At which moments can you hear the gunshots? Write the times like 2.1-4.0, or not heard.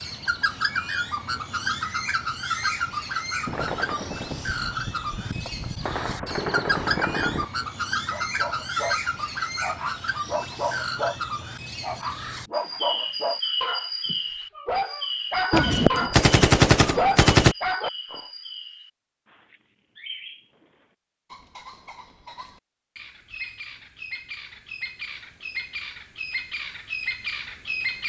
3.5-7.5, 15.5-17.6.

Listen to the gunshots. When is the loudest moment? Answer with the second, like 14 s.
17 s.